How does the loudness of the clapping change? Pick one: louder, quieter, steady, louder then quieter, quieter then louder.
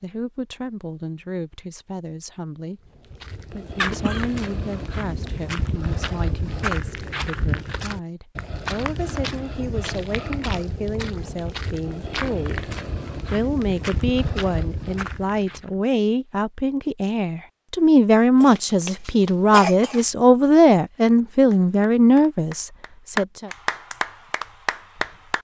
louder then quieter.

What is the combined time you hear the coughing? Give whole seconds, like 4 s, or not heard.
2 s.